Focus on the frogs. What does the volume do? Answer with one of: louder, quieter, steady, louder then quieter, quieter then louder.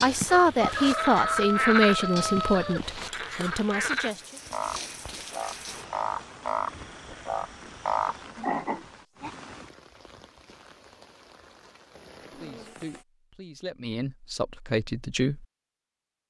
quieter then louder.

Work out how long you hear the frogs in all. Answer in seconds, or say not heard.
9 s.